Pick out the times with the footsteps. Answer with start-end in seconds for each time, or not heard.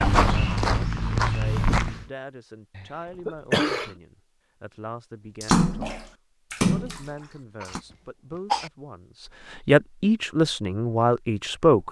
0.0-2.1.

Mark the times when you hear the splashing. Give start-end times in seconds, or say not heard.
5.4-7.8.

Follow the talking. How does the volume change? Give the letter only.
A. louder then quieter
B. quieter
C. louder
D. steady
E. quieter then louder
C.